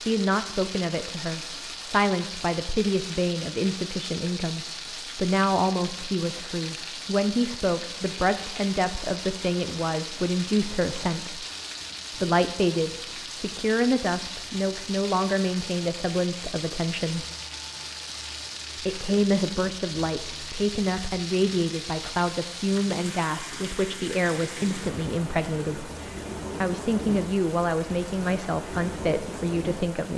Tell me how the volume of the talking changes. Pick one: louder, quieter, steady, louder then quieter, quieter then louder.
steady.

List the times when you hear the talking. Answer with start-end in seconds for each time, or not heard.
0.0-11.4, 12.1-17.2, 18.8-25.9, 26.6-30.1.